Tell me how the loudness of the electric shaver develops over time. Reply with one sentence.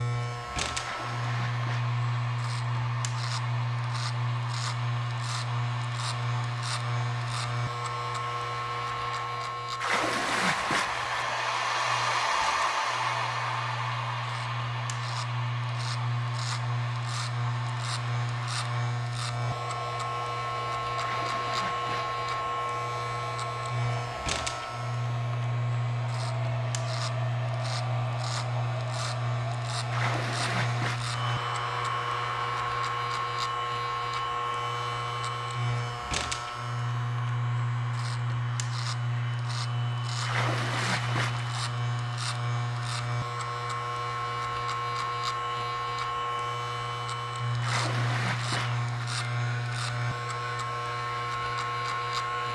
The volume of the electric shaver stays about the same.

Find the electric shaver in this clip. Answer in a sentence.
The electric shaver can be heard from 0.0 to 52.4 s.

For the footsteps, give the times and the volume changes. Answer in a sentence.
The footsteps can't be heard in this clip.